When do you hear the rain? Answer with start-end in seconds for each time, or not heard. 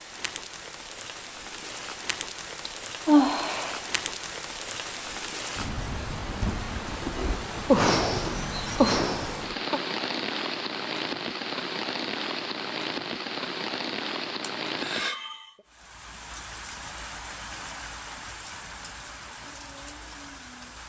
0.0-20.8.